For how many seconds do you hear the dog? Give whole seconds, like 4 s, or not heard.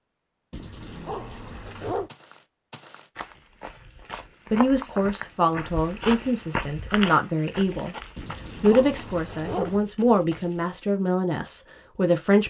3 s.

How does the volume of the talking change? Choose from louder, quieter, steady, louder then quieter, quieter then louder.
steady.